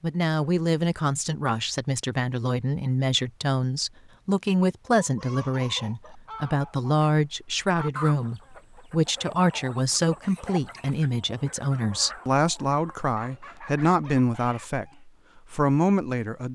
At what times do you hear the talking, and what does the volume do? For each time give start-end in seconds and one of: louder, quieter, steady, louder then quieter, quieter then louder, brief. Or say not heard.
0.0-16.5 steady.